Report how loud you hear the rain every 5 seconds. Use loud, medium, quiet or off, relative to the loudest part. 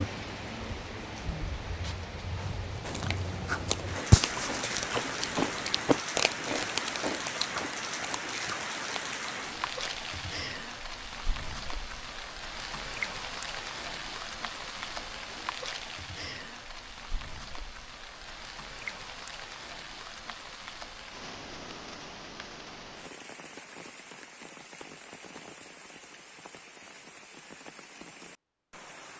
loud, loud, loud, medium, medium, quiet.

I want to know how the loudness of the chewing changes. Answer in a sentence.
The loudness of the chewing goes down.